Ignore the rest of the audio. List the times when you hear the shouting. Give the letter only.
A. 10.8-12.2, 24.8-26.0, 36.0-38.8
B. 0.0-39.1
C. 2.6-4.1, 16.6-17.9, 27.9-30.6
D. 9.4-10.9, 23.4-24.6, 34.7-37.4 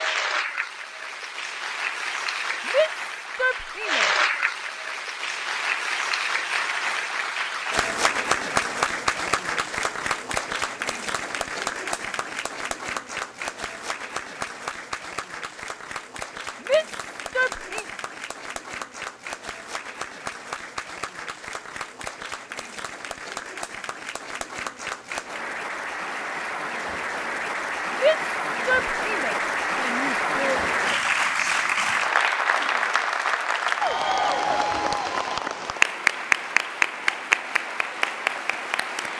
C.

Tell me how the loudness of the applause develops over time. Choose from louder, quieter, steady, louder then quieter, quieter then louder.
quieter then louder.